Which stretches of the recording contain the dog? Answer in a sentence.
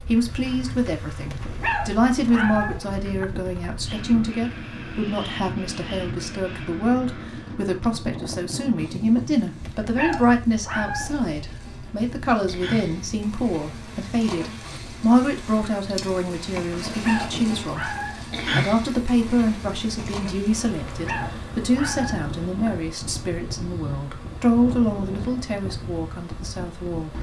The dog can be heard from 1.3 to 3.2 s, from 9.7 to 11.2 s, from 16.9 to 18.2 s and from 20.9 to 22.7 s.